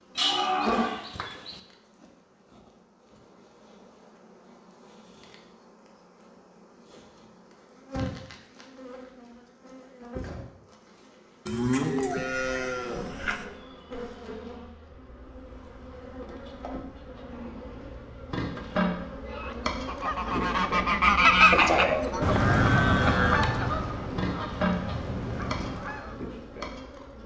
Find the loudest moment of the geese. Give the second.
21 s.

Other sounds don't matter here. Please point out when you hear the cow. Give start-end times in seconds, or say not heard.
0.1-1.6, 11.4-13.4, 21.5-23.4.